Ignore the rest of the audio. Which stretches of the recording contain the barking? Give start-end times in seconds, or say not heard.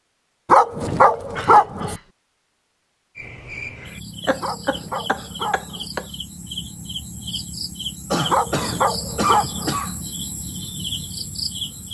0.5-2.0, 4.4-5.9, 8.3-9.8.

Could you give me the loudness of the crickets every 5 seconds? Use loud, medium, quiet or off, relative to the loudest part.
medium, loud, loud.